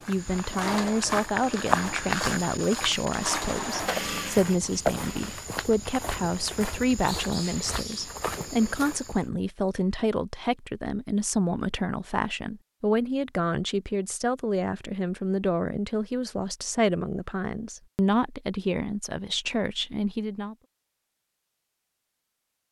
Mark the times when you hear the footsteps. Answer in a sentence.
You can hear the footsteps from 0.0 to 9.2 s.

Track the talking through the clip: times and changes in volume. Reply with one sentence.
The talking can be heard from 0.1 to 20.6 s, at a steady volume.